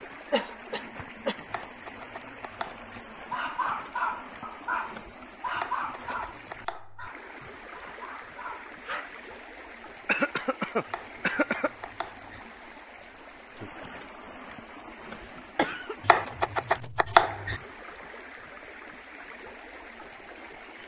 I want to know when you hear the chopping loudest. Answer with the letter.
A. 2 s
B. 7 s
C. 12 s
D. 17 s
D.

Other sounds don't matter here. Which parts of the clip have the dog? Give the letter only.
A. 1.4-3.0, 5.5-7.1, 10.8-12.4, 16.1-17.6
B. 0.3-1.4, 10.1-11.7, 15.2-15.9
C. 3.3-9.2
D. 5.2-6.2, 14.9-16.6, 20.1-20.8
C.